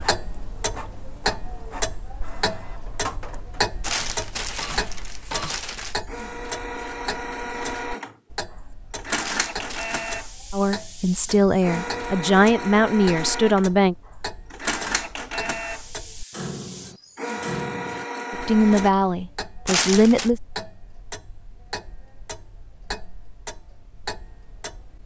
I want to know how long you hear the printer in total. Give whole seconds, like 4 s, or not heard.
19 s.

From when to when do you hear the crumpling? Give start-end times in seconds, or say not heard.
3.8-6.0, 9.2-10.2, 19.6-20.3.